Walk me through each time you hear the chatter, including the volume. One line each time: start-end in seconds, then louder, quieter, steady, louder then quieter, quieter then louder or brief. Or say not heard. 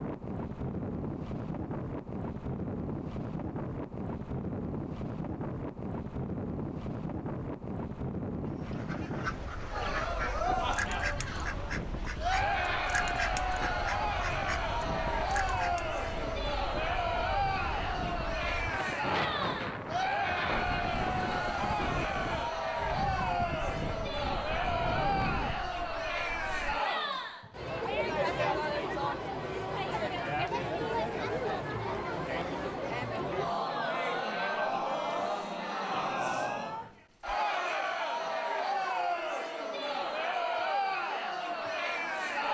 9.7-42.4 steady.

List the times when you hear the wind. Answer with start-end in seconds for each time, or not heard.
0.0-26.8.